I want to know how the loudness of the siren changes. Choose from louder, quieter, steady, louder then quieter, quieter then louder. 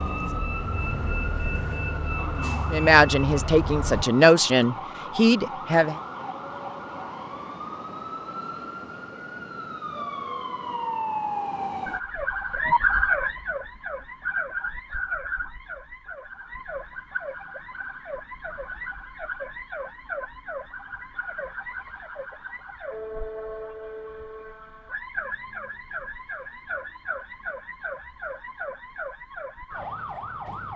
louder then quieter.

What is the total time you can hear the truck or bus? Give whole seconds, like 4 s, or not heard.
4 s.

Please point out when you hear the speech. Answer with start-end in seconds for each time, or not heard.
2.7-6.0.